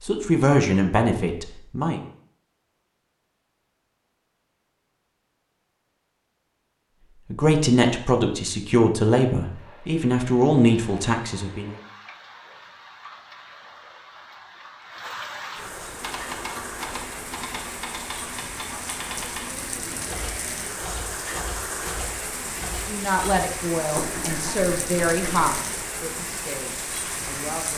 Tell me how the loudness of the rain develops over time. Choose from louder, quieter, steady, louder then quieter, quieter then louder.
louder.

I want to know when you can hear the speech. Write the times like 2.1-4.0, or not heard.
0.0-2.0, 7.3-11.8, 22.7-27.7.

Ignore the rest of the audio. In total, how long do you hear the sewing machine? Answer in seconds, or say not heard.
not heard.